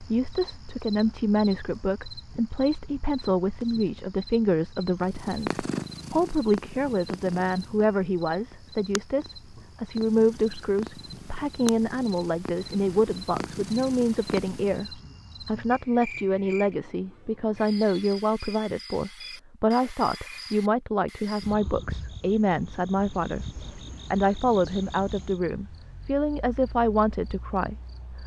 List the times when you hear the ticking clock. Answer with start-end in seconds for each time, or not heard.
not heard.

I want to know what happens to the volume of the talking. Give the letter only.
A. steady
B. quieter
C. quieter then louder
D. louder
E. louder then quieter
A.